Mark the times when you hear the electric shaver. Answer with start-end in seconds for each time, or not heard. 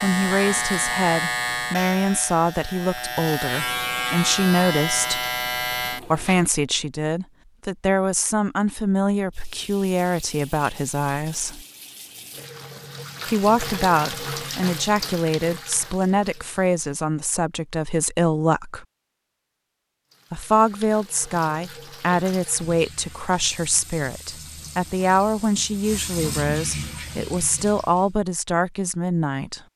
0.0-6.5.